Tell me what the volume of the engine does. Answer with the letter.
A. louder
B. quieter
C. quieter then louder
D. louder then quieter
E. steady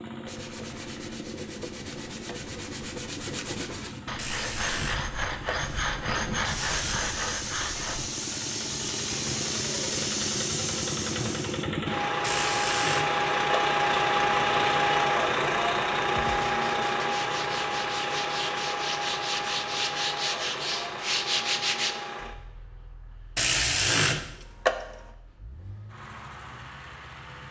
D.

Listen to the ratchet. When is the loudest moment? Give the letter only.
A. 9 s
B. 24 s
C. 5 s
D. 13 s
B.